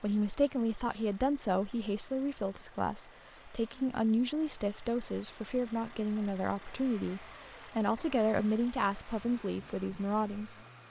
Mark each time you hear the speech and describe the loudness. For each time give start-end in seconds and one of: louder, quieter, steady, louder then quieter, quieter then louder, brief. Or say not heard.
0.0-10.6 steady.